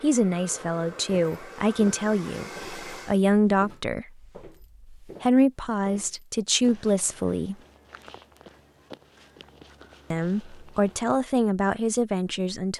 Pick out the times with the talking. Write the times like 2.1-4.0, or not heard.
0.0-4.1, 5.0-7.5, 10.1-12.7.